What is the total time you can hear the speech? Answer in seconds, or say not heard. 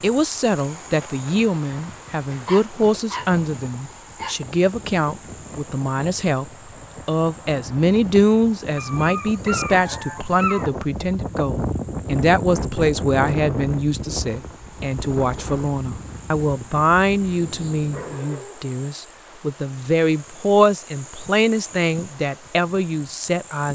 23 s.